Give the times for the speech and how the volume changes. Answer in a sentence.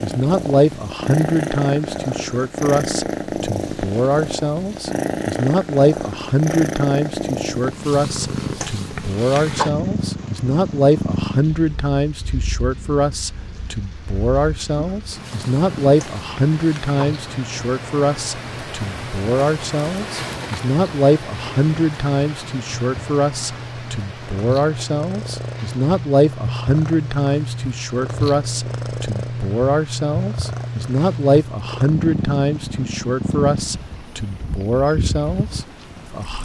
The speech can be heard from 0.0 to 36.4 s, at a steady volume.